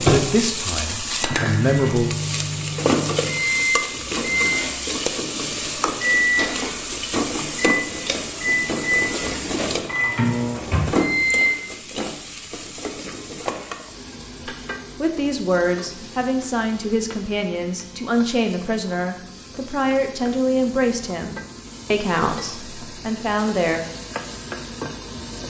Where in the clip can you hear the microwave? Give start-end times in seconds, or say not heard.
0.0-11.5.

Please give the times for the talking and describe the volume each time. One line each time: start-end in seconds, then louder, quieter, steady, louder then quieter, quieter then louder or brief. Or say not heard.
0.0-2.1 brief
14.4-23.9 steady.